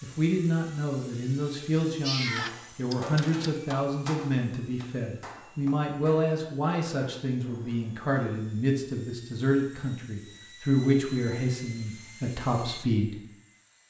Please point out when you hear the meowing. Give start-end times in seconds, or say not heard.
2.0-3.4.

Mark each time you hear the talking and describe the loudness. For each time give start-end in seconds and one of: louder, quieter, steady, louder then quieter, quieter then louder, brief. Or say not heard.
0.0-13.2 steady.